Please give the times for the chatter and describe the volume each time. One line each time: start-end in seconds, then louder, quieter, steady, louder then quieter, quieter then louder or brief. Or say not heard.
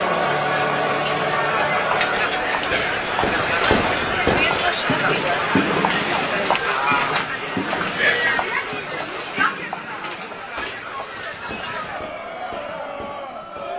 0.0-13.7 quieter.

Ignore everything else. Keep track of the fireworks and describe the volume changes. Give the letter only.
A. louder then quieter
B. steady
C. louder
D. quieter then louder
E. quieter
E.